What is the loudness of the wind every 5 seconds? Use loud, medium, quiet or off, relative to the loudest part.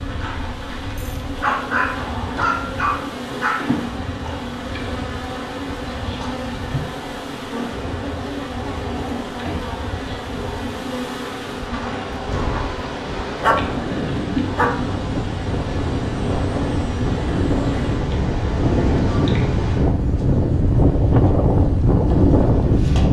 quiet, quiet, quiet, medium, loud.